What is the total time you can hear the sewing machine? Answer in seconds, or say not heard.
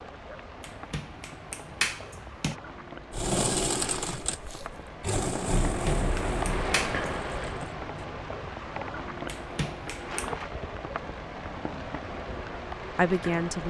5 s.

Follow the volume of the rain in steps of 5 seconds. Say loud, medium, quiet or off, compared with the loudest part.
medium, loud, loud.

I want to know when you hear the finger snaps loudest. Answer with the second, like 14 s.
2 s.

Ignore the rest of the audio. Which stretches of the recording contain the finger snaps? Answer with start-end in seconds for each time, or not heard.
0.6-2.5, 5.5-7.0, 9.2-10.3.